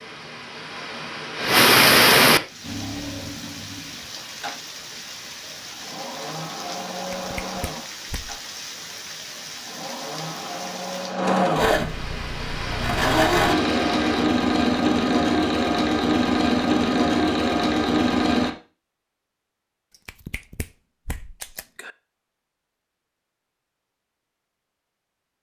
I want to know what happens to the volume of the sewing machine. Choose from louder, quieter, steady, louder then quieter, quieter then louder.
louder.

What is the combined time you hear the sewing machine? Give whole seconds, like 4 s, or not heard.
16 s.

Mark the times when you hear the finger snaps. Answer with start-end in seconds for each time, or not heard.
7.0-8.4, 20.1-21.9.